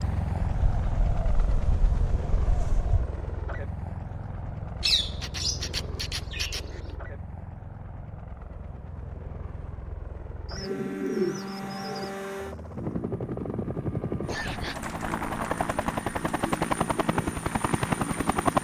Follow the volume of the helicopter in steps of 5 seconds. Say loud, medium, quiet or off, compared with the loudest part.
medium, quiet, medium, loud.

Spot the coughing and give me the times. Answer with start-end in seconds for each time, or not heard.
14.0-14.8.